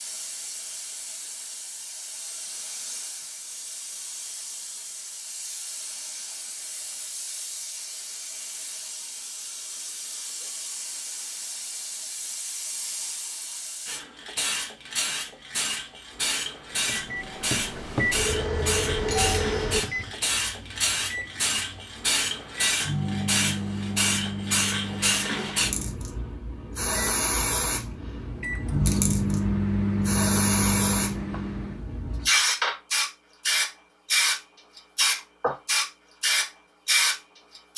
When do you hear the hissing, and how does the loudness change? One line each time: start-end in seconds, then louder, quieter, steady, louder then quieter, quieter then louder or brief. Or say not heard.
0.0-37.7 louder.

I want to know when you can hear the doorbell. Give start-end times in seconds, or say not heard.
19.1-20.1.